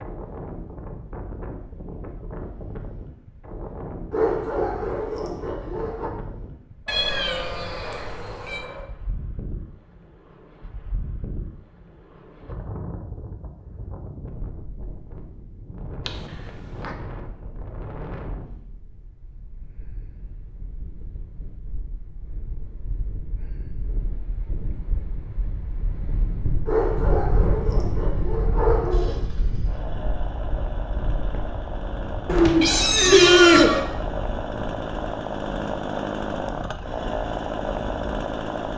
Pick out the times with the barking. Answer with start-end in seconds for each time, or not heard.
4.1-6.1, 26.6-29.2.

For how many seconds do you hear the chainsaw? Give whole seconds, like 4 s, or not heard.
10 s.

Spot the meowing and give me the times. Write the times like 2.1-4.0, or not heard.
6.8-8.7, 16.1-16.9, 32.2-33.8.